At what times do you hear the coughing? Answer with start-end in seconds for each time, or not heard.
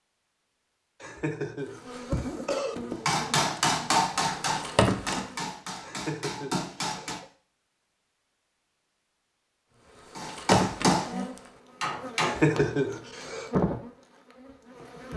1.0-2.8, 5.8-7.2, 12.2-13.5.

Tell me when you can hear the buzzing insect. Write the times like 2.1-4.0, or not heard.
1.9-5.5, 9.9-15.1.